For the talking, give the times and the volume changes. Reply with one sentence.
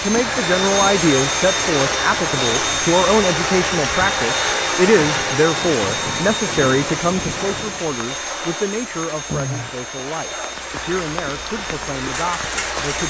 You can hear the talking from 0.0 to 13.0 s, getting quieter.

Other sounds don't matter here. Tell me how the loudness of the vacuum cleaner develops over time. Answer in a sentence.
The loudness of the vacuum cleaner goes down.